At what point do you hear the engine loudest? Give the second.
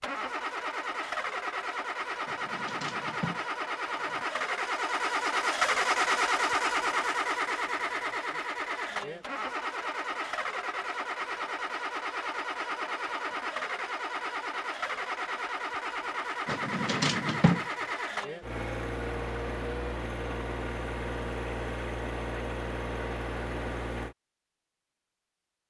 6 s.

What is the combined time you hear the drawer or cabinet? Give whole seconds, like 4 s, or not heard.
3 s.